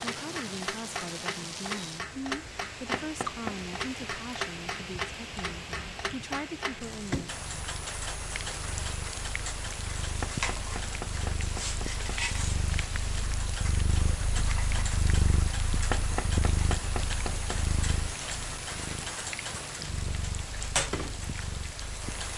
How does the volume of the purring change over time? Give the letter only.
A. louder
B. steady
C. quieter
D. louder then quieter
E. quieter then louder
D.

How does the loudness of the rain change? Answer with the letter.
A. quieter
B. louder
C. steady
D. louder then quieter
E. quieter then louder
C.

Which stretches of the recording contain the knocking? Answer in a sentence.
You can hear the knocking from 2.9 to 3.6 s, from 10.2 to 12.2 s and from 15.9 to 17.6 s.